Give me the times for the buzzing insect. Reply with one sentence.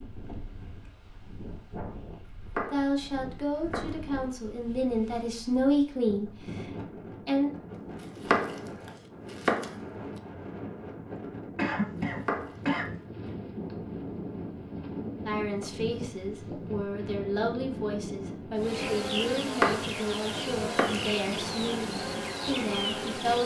You can hear the buzzing insect from 18.6 to 23.4 s.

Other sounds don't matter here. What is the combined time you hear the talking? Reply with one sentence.
The talking can be heard for 13 seconds in total.